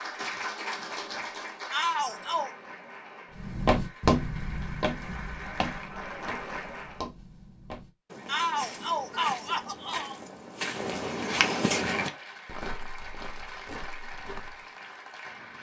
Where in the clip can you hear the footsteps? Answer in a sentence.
The footsteps can be heard from 3.4 to 14.7 s.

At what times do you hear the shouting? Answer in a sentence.
The shouting can be heard from 1.7 to 2.5 s and from 8.2 to 10.2 s.